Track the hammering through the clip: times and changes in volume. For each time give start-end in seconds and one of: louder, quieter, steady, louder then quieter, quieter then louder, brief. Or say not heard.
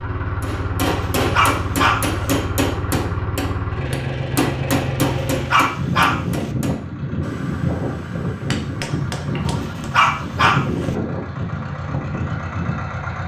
0.4-9.8 quieter.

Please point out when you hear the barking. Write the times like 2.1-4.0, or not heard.
0.8-2.4, 5.0-6.5, 9.4-10.9.